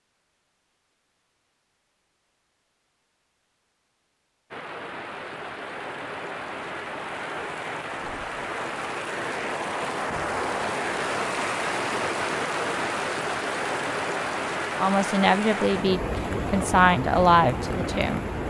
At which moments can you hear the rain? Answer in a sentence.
The rain can be heard from 4.5 to 18.4 s.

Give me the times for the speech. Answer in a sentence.
You can hear the speech from 14.8 to 18.2 s.